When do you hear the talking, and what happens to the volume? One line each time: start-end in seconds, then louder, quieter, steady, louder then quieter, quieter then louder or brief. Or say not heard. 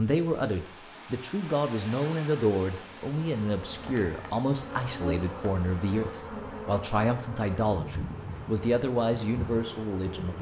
0.0-10.3 steady.